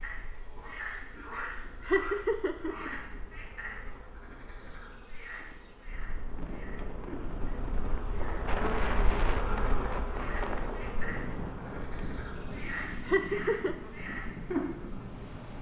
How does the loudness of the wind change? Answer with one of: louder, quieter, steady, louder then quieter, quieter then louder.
louder then quieter.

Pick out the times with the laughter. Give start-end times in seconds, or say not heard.
1.9-3.4, 13.1-13.8.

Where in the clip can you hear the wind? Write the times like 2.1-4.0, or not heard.
5.9-15.5.